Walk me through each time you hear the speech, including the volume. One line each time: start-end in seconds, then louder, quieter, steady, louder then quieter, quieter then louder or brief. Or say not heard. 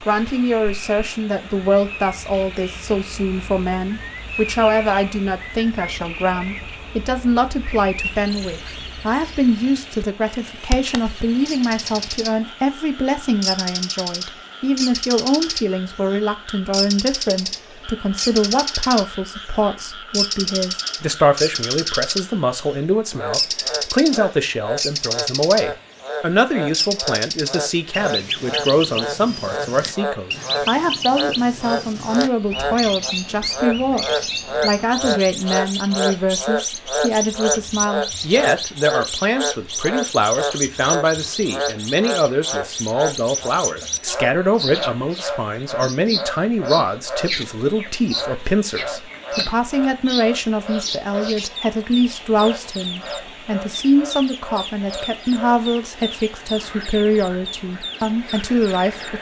0.1-59.1 steady.